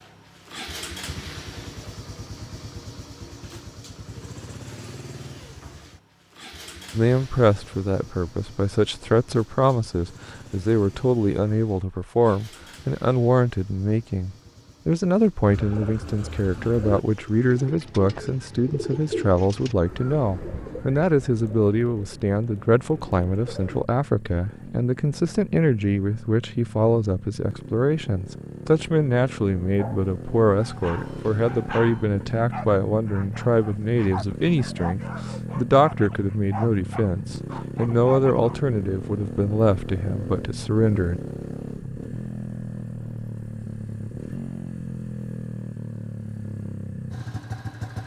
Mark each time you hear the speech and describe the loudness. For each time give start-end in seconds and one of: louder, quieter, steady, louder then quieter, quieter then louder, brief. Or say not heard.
7.0-41.2 steady.